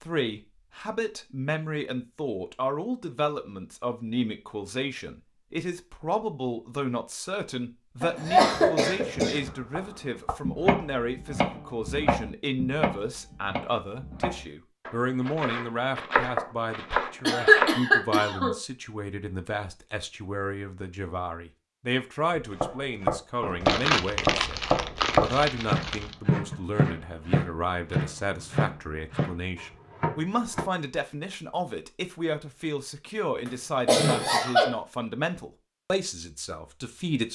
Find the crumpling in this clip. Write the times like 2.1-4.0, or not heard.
23.6-26.1.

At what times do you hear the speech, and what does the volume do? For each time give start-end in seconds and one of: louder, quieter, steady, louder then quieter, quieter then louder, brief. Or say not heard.
0.0-37.3 steady.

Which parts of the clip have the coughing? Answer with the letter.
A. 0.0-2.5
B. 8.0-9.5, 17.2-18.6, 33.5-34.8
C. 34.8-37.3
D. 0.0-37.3
B.